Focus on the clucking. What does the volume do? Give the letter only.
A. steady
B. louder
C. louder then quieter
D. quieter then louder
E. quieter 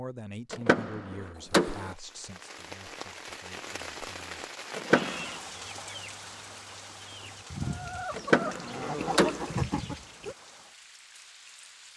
D.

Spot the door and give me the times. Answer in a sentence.
You can hear the door from 0.5 to 1.9 s, from 4.8 to 5.3 s and from 8.2 to 9.6 s.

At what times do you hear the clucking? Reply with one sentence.
The clucking can be heard from 4.9 to 10.3 s.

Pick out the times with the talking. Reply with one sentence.
The talking can be heard from 0.0 to 4.5 s.